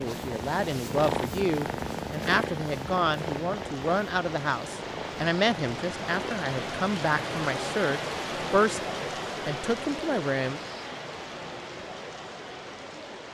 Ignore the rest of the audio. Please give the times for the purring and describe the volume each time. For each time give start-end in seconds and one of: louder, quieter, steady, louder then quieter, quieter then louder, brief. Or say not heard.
0.0-6.5 quieter.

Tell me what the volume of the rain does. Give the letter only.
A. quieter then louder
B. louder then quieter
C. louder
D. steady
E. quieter
B.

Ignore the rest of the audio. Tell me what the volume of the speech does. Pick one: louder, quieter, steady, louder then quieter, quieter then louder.
steady.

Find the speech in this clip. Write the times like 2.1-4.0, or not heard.
0.0-10.6.